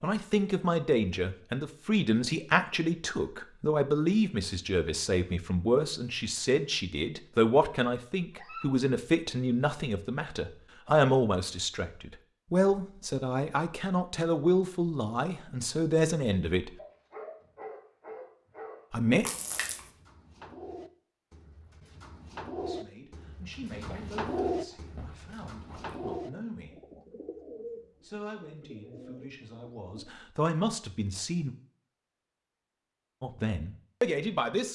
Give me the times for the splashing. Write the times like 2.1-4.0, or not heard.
19.2-19.9.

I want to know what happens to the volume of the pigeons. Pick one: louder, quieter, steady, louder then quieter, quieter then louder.
louder then quieter.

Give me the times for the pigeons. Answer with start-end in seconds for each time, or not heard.
19.8-30.2.